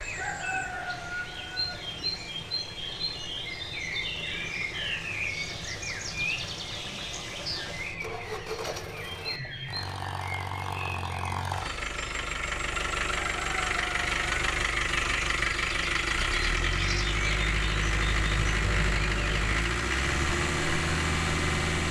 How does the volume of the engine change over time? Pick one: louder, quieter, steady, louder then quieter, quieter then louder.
louder.